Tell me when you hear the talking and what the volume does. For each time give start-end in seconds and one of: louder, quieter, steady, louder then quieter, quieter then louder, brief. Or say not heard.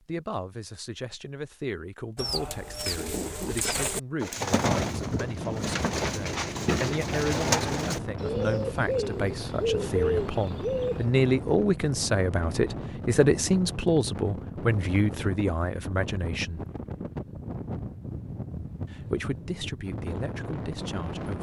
0.1-16.6 louder
18.9-21.3 brief.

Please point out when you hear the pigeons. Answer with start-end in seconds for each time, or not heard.
2.1-11.1.